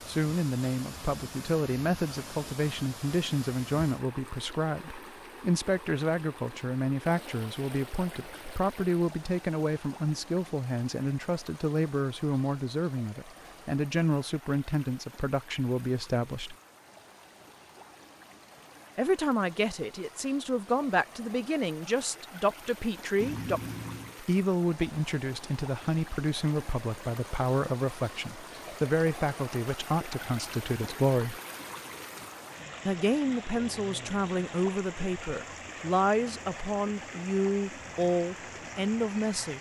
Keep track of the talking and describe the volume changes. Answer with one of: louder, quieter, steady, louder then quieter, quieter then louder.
steady.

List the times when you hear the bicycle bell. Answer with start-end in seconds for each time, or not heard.
23.2-24.1.